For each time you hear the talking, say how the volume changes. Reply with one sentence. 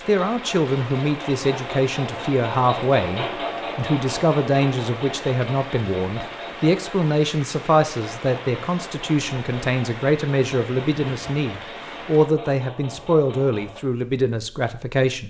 You can hear the talking from 0.1 to 15.2 s, at a steady volume.